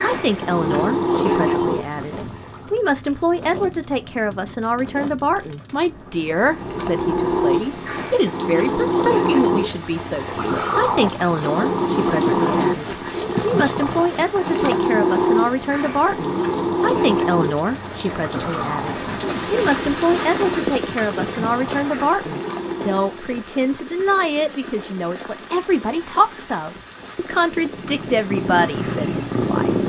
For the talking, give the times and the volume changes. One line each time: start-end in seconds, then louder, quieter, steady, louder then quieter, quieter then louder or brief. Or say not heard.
0.0-29.8 steady.